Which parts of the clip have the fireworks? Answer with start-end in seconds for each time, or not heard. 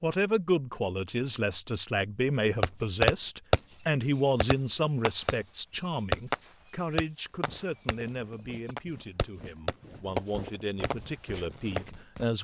2.6-11.9.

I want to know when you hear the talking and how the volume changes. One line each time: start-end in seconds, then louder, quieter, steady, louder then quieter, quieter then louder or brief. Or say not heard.
0.0-12.3 quieter.